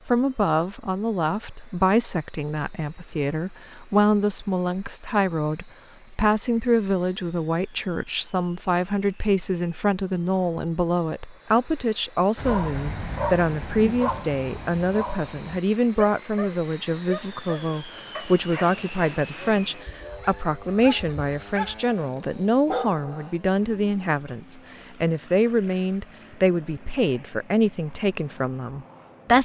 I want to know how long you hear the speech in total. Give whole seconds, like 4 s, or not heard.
29 s.